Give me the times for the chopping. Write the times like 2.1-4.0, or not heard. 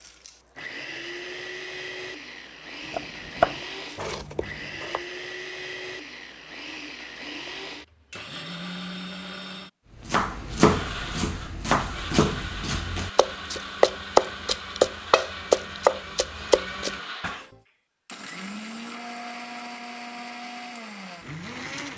2.9-5.0, 10.1-17.4.